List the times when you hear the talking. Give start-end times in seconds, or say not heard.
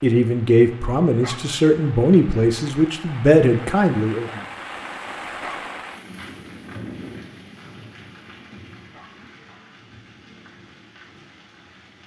0.0-4.3.